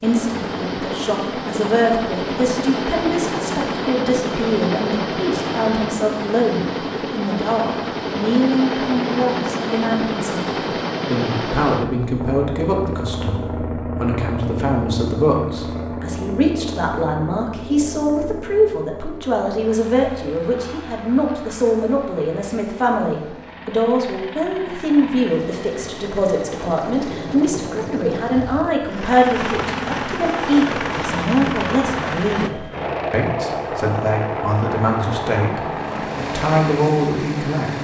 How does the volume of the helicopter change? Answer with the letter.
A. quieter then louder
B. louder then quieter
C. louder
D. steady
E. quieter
A.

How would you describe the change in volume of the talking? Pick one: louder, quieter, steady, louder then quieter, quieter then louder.
steady.